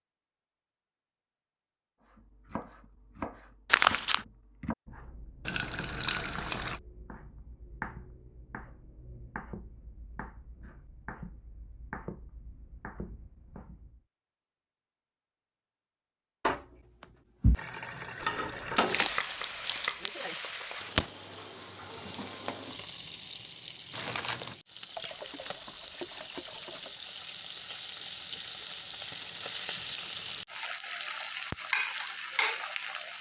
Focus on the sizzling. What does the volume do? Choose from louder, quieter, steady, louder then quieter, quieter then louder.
quieter then louder.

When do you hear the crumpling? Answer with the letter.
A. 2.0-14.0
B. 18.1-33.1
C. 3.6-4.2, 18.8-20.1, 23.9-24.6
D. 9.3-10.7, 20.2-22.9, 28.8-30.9
C.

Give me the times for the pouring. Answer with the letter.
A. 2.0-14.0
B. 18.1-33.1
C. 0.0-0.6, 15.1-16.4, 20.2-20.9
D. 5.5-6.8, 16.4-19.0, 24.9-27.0
D.